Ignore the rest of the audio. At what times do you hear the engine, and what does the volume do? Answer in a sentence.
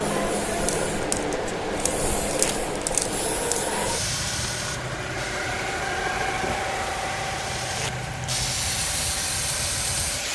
The engine can be heard from 0.0 to 10.3 s, getting louder then quieter.